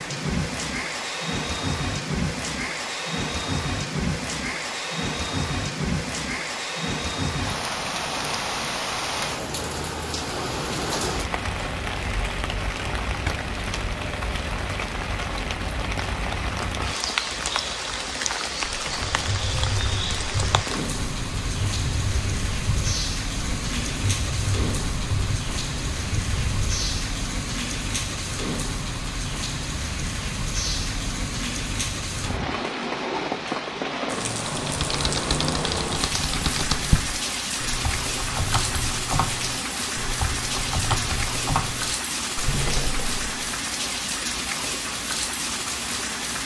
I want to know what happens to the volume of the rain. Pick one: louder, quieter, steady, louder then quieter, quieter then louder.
steady.